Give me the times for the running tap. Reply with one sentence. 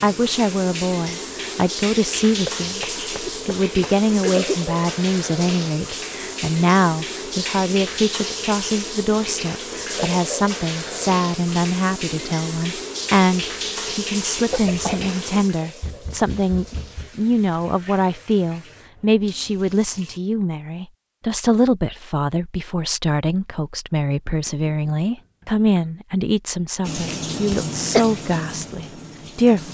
You can hear the running tap from 0.0 to 20.2 s and from 26.8 to 29.6 s.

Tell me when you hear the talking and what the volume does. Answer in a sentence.
You can hear the talking from 0.0 to 29.6 s, at a steady volume.